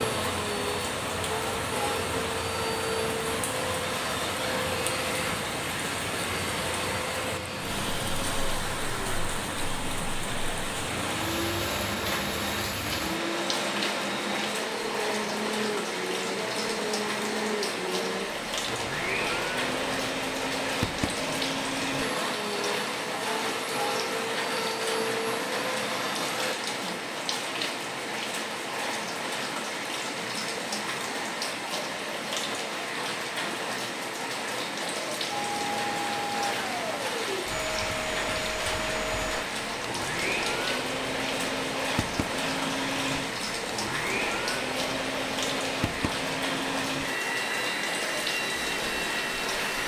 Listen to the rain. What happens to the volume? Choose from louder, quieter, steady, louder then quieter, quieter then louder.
steady.